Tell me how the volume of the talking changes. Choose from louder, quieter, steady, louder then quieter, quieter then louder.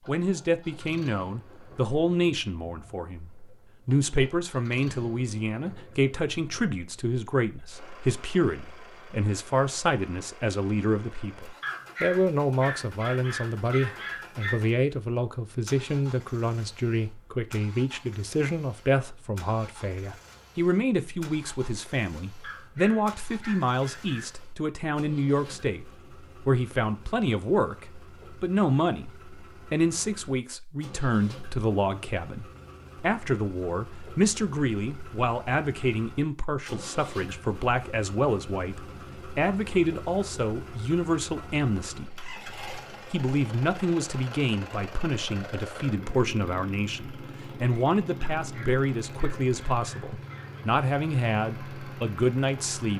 steady.